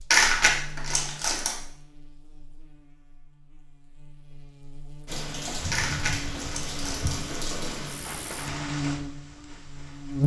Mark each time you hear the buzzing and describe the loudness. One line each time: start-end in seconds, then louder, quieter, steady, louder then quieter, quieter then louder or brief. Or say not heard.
0.0-10.2 quieter then louder.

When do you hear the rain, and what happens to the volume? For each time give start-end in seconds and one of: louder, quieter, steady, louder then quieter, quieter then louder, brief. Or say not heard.
5.0-10.2 quieter.